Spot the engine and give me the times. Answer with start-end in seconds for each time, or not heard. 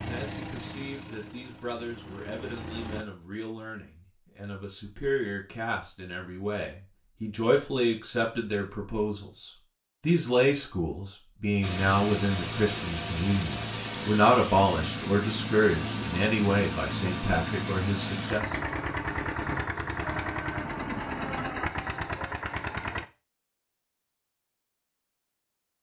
0.0-3.0, 11.6-23.1.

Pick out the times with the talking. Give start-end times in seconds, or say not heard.
0.0-18.6.